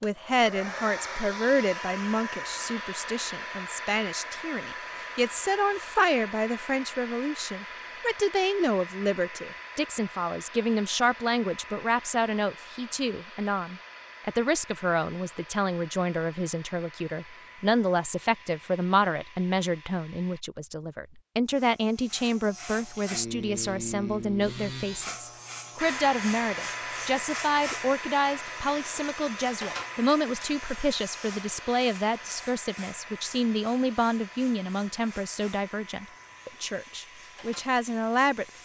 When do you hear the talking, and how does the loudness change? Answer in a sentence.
The talking can be heard from 0.0 to 38.5 s, at a steady volume.